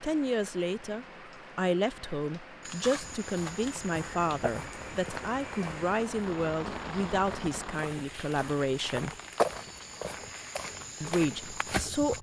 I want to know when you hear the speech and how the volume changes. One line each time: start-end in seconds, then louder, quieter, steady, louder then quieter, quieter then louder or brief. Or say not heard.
0.0-9.2 steady
11.0-12.1 brief.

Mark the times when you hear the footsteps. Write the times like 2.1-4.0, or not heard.
2.6-12.1.